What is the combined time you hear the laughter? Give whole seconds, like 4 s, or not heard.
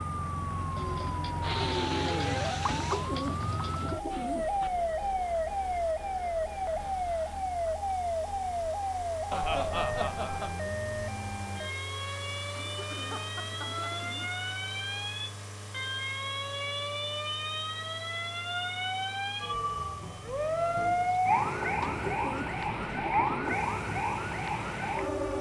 2 s.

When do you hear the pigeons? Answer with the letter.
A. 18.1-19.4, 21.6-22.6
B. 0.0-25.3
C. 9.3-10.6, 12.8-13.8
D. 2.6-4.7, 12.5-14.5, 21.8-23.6
D.